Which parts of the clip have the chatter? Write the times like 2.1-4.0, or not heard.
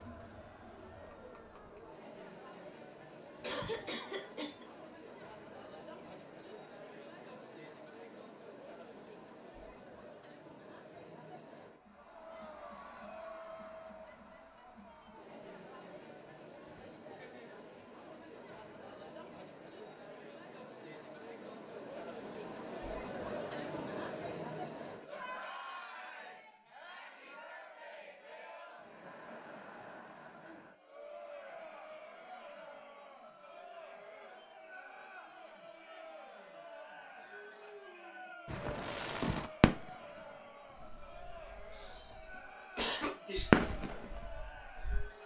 0.0-45.2.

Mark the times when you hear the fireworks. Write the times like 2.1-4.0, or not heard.
38.5-40.0, 40.8-42.5, 43.4-45.1.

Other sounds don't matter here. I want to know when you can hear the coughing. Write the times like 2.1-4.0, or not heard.
3.4-4.7, 41.8-43.5.